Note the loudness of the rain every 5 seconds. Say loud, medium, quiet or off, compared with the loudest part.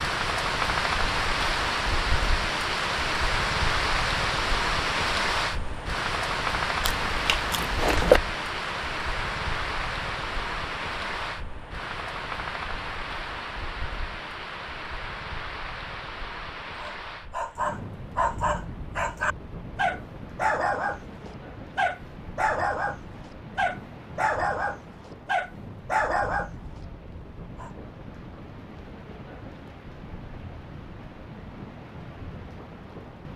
loud, loud, medium, quiet, quiet, quiet, quiet.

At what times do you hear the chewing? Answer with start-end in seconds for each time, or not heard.
6.8-8.2.